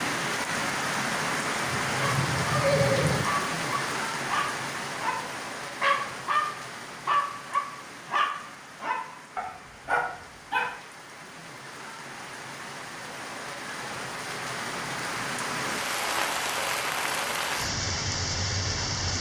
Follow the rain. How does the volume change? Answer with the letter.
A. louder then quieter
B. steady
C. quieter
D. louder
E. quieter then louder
E.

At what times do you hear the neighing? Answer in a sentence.
You can hear the neighing from 1.7 to 3.2 s.